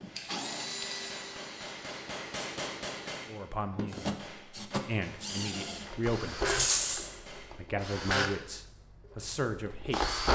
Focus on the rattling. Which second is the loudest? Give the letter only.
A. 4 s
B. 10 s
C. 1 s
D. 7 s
D.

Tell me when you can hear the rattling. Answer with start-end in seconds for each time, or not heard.
0.1-1.1, 6.5-7.0.